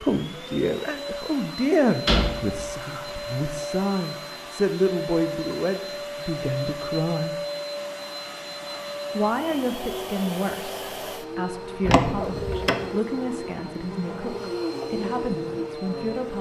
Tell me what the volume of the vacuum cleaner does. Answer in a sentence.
The volume of the vacuum cleaner stays about the same.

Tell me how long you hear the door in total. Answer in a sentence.
The door can be heard for 2 seconds in total.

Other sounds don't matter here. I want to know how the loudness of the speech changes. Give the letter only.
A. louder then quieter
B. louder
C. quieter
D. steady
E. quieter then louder
C.